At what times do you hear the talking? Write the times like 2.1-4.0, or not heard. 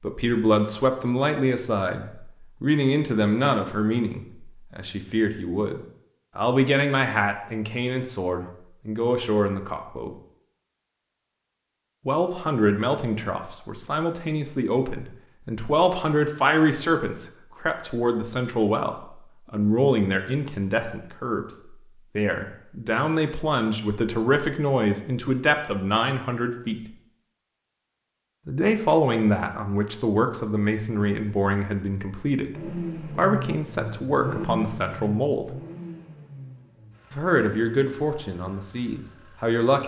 0.0-10.1, 12.1-21.4, 22.1-26.8, 28.4-35.5, 37.1-39.8.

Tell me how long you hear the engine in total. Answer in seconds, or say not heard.
7 s.